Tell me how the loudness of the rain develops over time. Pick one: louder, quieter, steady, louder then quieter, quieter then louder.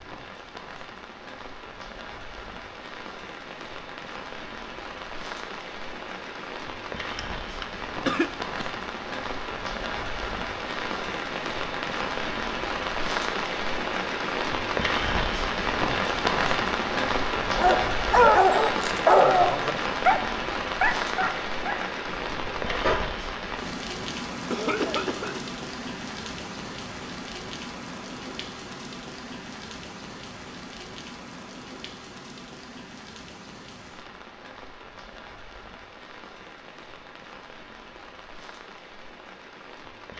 louder then quieter.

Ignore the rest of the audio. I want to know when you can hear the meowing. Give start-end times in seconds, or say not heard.
not heard.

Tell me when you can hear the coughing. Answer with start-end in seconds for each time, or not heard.
7.0-8.7, 24.5-25.4.